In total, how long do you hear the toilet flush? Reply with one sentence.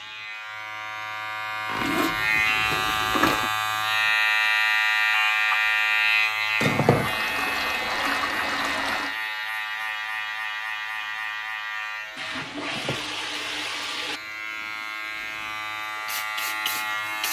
The toilet flush can be heard for 6 seconds in total.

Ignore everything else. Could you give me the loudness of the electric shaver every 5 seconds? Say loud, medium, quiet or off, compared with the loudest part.
loud, loud, medium, medium.